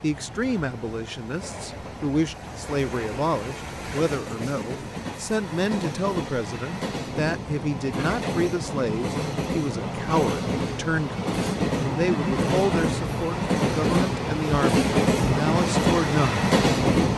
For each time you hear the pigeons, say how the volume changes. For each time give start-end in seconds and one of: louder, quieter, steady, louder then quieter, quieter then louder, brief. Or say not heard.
not heard.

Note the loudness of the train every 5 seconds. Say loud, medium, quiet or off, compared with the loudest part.
quiet, medium, loud, loud.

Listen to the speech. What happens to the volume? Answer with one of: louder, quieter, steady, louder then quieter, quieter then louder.
steady.